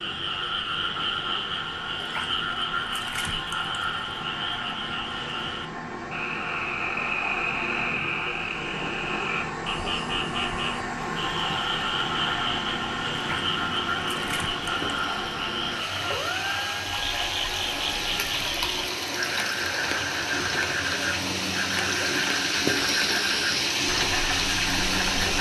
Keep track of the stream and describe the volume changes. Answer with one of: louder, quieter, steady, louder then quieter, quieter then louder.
louder.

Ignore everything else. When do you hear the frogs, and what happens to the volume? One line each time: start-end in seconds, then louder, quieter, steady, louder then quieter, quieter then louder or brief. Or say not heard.
0.0-25.3 steady.